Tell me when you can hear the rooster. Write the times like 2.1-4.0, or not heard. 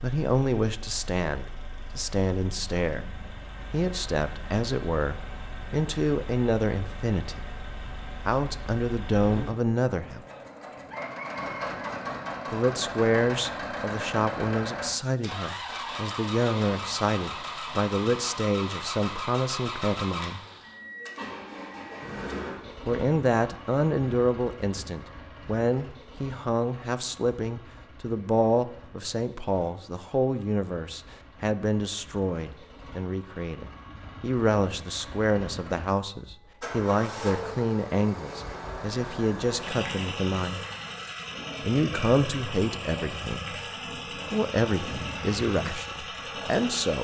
10.9-12.0.